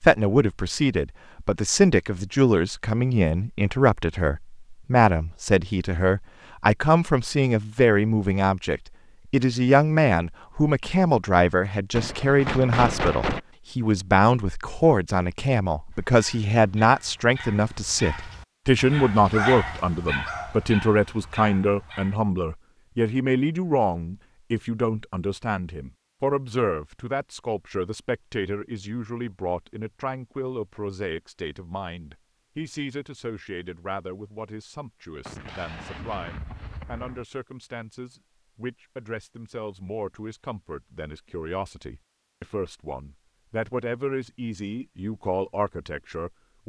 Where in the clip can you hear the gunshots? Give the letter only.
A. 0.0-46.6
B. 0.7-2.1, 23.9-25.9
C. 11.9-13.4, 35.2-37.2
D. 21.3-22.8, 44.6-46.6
C.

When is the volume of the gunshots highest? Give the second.
13 s.